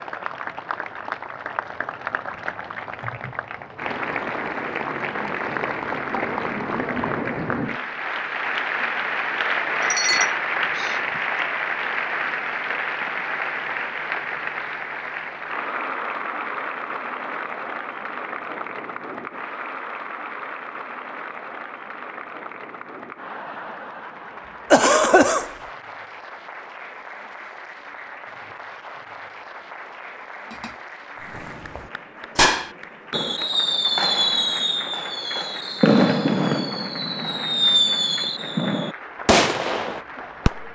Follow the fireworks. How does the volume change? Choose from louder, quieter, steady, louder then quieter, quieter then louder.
steady.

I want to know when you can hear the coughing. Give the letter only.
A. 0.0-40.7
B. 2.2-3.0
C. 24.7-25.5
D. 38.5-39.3
C.